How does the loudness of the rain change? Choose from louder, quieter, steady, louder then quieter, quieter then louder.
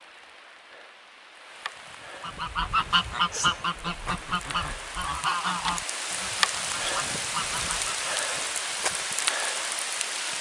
louder.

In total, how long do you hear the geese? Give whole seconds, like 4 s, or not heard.
6 s.